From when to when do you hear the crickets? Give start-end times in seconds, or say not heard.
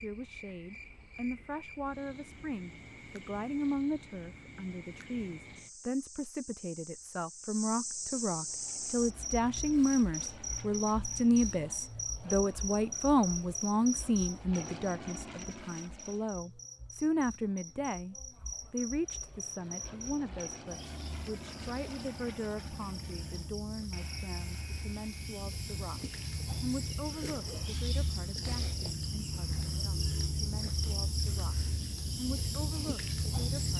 0.0-33.7.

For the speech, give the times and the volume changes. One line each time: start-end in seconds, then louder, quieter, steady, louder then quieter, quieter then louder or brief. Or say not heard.
0.0-33.7 louder then quieter.